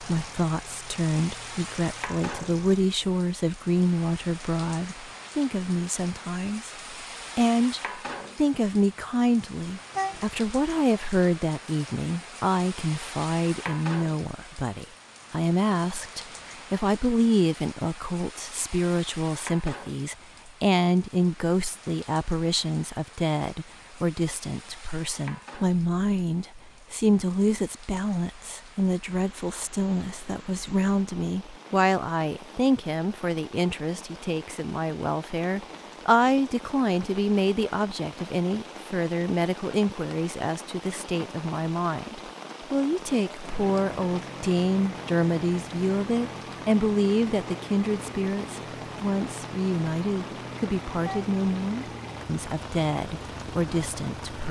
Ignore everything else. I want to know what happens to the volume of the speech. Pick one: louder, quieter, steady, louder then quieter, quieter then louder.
steady.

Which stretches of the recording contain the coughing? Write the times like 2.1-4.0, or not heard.
not heard.